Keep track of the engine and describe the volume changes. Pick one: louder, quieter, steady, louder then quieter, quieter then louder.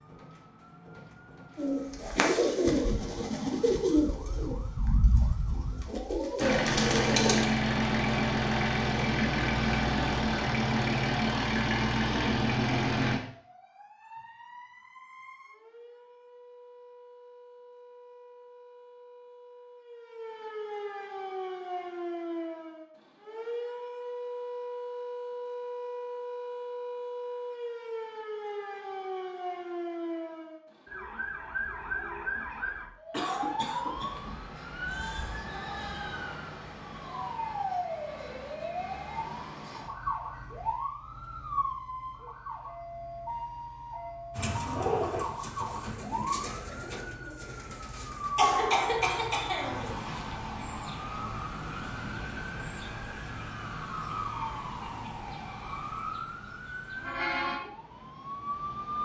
steady.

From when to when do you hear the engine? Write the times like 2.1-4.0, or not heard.
6.3-13.2.